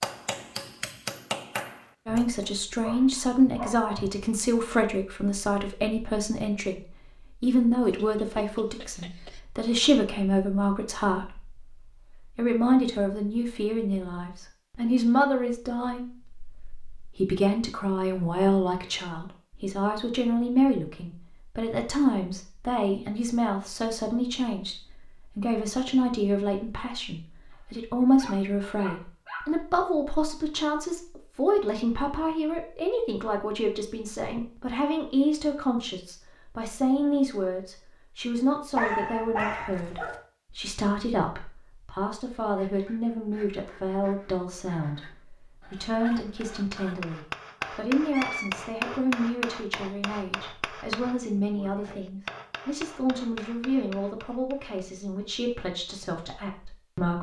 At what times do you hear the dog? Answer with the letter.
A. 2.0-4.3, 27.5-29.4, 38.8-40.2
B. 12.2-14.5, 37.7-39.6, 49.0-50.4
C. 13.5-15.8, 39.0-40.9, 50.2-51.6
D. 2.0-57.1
A.